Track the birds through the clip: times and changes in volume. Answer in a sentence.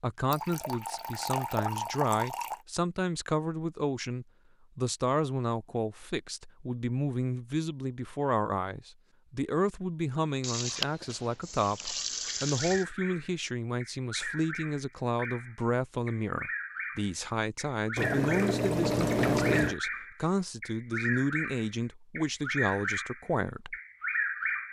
The birds can be heard from 12.4 to 24.6 s, getting louder.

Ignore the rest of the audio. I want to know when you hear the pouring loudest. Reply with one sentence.
The volume of the pouring peaks at 19 seconds.